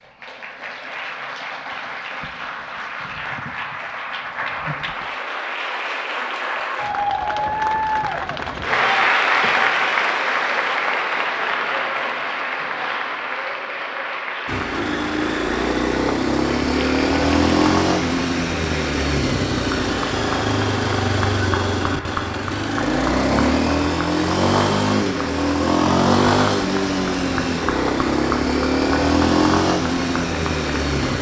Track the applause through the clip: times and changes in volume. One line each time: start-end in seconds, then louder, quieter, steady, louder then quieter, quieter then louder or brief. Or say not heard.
0.0-31.1 louder then quieter.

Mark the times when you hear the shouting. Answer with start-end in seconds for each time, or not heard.
not heard.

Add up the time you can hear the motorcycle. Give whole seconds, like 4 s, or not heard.
17 s.